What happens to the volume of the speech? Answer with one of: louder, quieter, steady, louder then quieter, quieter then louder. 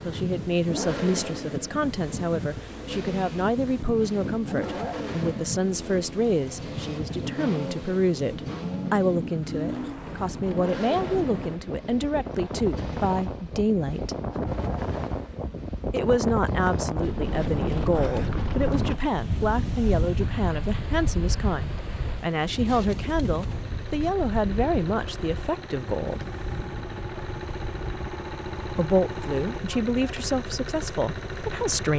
steady.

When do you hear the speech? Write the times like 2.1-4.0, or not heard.
0.0-14.2, 15.9-26.2, 28.8-31.9.